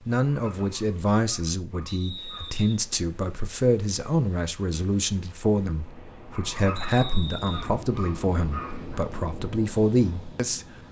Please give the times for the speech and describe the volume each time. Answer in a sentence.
You can hear the speech from 0.1 to 10.7 s, at a steady volume.